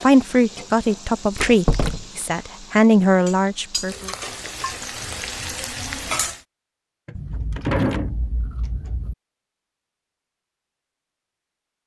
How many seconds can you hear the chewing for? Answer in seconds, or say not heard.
2 s.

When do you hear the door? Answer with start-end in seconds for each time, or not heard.
1.4-2.0, 7.0-8.7.